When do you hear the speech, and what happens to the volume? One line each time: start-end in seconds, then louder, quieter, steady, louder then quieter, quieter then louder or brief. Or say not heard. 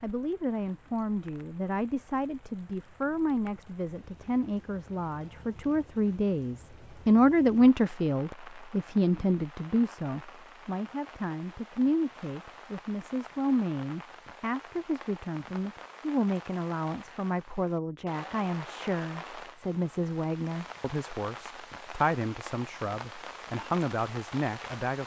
0.0-25.0 louder then quieter.